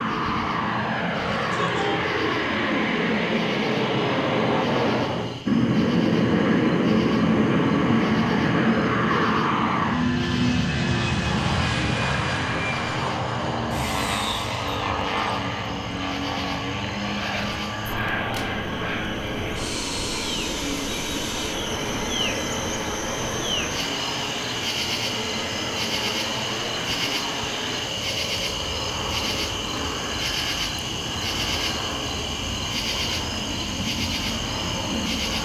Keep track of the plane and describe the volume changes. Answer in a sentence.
The volume of the plane goes down.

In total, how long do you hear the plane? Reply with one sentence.
The plane can be heard for 35 seconds in total.